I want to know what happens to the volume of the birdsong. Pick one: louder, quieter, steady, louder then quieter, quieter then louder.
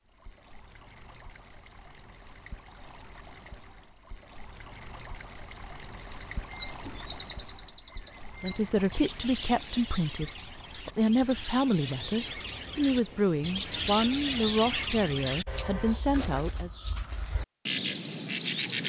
quieter then louder.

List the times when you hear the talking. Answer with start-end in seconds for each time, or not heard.
8.4-16.7.